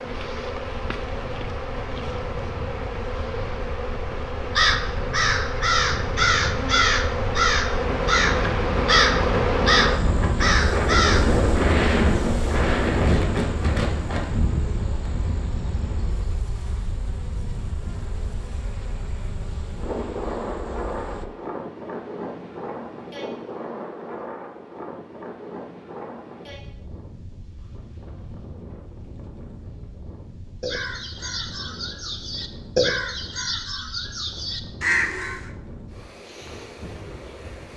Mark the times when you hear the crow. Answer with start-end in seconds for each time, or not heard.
4.5-11.3, 30.6-35.5.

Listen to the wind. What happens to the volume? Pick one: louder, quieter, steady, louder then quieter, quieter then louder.
louder then quieter.